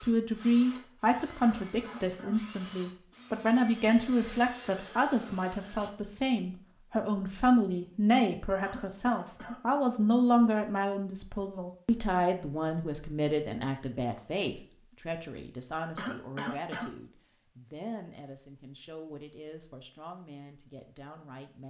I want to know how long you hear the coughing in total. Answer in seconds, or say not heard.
3 s.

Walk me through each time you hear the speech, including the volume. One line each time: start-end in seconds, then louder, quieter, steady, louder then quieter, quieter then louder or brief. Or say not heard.
0.0-21.6 quieter.